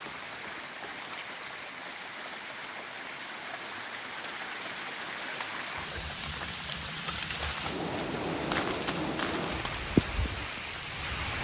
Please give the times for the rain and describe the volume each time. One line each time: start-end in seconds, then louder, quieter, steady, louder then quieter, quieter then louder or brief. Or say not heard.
0.0-11.4 louder.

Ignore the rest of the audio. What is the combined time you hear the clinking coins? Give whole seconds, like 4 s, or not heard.
3 s.